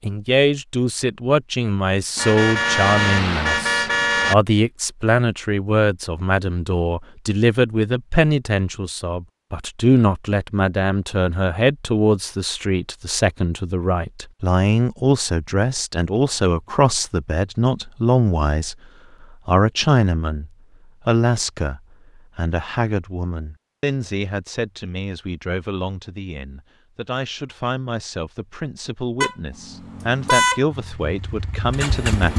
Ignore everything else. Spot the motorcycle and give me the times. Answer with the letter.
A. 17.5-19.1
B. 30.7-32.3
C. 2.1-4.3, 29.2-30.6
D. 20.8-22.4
B.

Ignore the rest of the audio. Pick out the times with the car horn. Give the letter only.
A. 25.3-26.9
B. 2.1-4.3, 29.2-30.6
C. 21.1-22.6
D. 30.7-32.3
B.